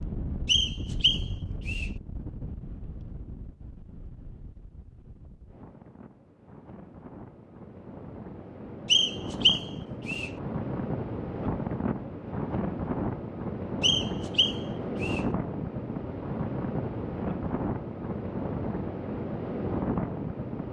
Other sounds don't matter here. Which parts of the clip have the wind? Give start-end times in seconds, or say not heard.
0.0-20.6.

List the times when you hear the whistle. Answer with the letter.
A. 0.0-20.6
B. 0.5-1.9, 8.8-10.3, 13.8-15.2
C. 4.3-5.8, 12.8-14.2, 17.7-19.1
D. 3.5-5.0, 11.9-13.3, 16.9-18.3
B.